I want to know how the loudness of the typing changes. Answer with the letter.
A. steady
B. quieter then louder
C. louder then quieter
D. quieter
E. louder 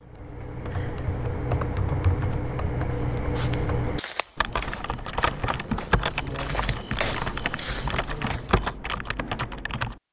A.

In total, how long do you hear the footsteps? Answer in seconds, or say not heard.
6 s.